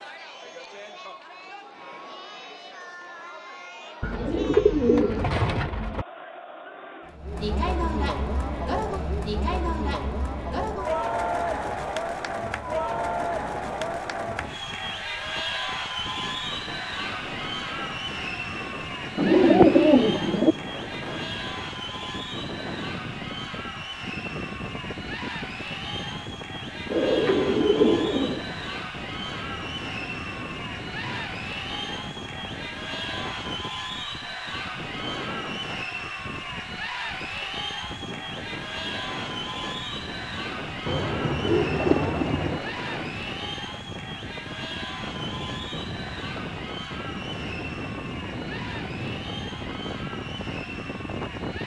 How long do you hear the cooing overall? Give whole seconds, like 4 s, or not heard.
7 s.